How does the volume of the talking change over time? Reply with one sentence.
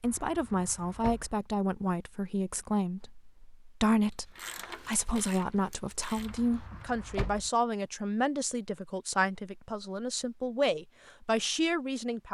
The loudness of the talking stays about the same.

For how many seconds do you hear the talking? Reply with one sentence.
The talking can be heard for 12 seconds in total.